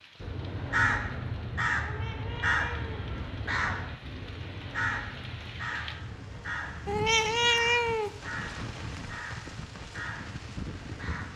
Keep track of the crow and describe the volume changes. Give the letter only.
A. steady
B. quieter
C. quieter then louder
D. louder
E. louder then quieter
B.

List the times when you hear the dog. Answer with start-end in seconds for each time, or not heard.
not heard.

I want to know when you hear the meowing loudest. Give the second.
8 s.